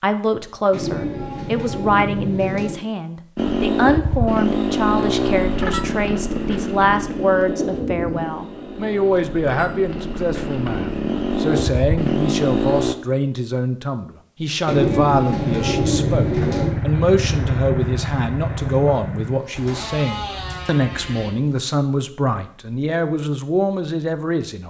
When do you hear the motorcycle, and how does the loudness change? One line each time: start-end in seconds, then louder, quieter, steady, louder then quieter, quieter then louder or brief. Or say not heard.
3.4-12.9 quieter then louder
15.3-21.3 quieter.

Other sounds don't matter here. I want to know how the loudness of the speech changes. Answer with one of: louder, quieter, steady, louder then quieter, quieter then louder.
steady.